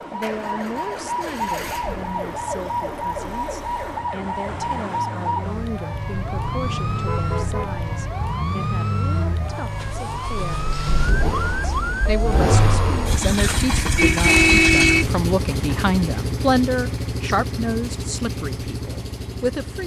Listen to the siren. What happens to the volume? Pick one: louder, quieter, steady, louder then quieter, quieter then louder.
steady.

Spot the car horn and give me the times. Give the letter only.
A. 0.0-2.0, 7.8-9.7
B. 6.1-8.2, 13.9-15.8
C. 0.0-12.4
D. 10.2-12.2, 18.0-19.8
B.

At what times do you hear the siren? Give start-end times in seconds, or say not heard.
0.0-12.4.